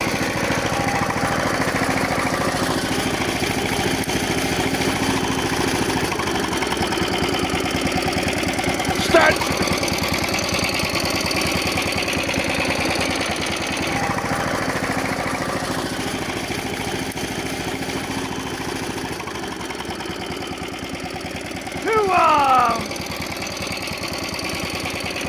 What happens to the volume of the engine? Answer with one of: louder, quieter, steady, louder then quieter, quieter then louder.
quieter.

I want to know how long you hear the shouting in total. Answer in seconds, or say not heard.
2 s.